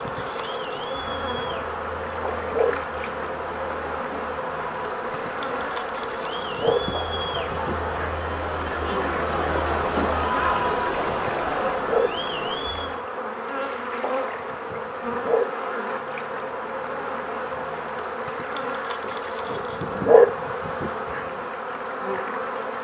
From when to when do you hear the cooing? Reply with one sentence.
The cooing can't be heard in this clip.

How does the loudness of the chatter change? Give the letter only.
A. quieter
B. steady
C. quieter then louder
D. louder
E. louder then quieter
D.